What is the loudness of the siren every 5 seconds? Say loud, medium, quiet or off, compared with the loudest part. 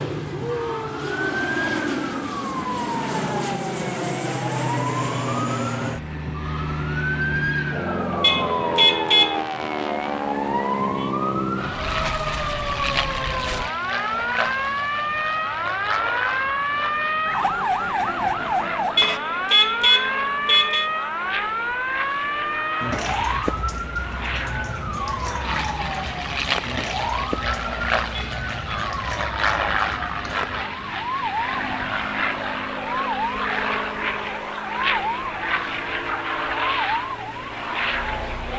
medium, medium, loud, loud, loud, medium, medium, medium.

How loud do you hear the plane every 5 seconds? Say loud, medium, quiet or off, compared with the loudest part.
loud, loud, loud, medium, medium, loud, loud, loud.